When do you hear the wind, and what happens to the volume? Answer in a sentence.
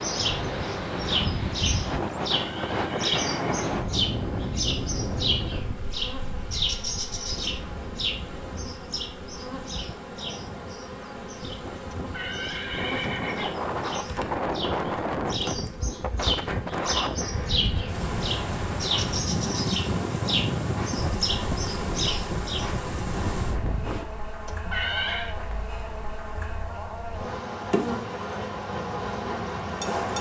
You can hear the wind from 0.0 to 24.1 s, getting quieter then louder.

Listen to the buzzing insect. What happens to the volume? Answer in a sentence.
The volume of the buzzing insect goes up.